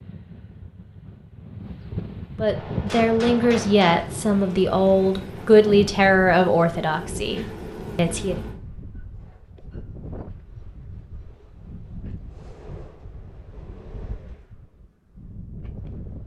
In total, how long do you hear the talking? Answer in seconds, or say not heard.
6 s.